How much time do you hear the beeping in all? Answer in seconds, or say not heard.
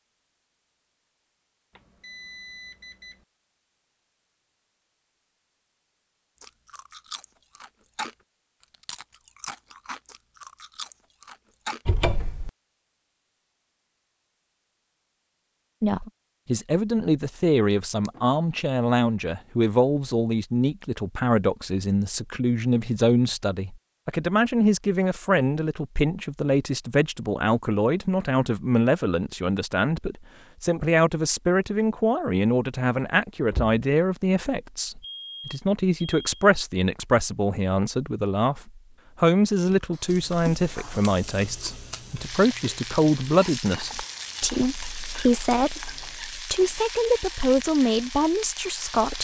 3 s.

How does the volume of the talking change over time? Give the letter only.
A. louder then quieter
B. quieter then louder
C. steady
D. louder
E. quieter
C.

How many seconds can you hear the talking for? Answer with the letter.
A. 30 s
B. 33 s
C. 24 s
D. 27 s
B.